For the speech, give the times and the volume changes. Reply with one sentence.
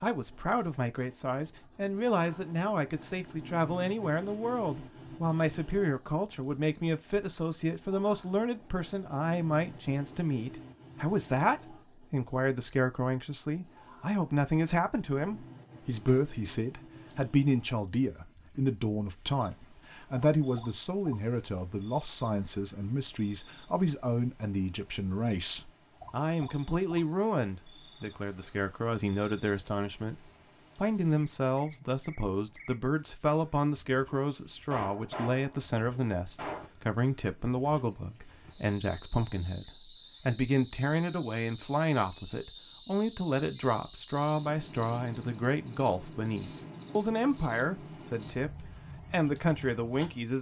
You can hear the speech from 0.0 to 50.3 s, at a steady volume.